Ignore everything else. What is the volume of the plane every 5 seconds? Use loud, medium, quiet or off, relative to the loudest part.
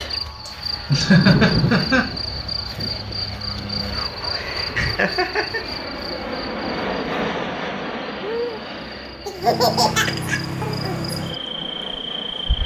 medium, loud, medium.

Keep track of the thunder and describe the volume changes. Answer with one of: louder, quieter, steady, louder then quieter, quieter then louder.
quieter.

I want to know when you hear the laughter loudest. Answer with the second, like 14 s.
1 s.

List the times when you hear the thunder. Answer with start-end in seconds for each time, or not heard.
0.9-5.0.